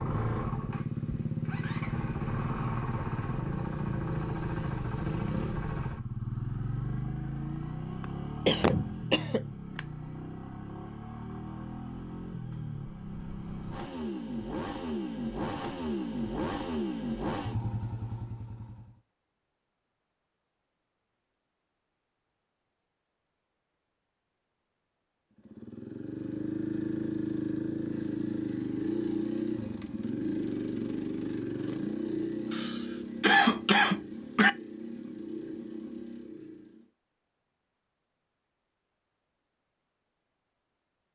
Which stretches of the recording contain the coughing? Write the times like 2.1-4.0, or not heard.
8.0-9.8, 32.5-34.5.